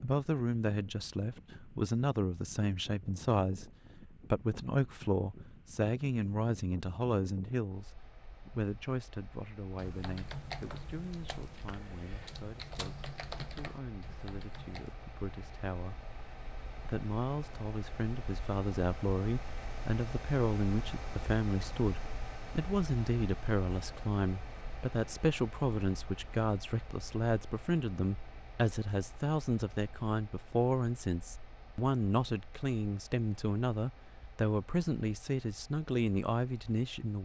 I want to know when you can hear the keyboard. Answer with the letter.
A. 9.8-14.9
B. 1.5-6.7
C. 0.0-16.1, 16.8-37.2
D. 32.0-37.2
A.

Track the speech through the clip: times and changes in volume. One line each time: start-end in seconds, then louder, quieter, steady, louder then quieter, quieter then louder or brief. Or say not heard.
0.0-16.1 quieter
16.8-37.2 steady.